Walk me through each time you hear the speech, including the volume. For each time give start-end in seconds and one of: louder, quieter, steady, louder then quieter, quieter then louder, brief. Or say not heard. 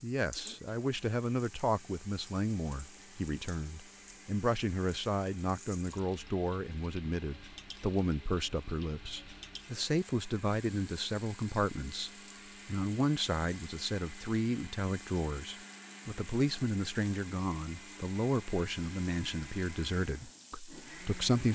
0.0-21.5 steady.